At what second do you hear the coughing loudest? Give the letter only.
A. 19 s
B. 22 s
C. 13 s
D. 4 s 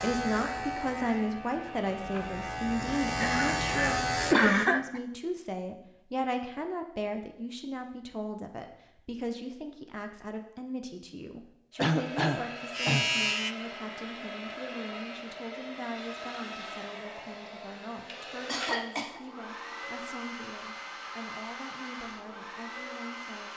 D.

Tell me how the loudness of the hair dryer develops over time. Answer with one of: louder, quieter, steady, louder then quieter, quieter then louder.
steady.